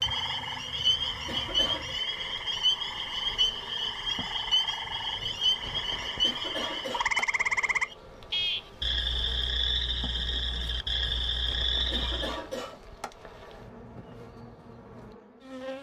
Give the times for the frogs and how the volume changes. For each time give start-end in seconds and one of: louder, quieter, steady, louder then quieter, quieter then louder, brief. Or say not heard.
0.0-12.4 steady.